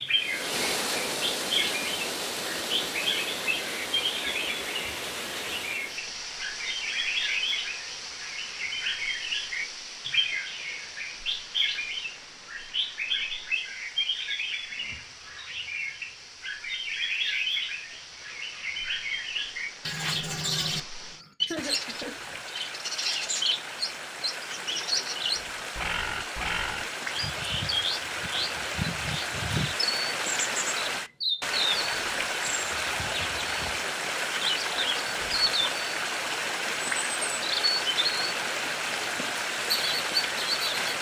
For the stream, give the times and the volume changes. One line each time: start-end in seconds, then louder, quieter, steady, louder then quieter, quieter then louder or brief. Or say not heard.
0.0-40.9 quieter then louder.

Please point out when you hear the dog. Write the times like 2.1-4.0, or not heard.
not heard.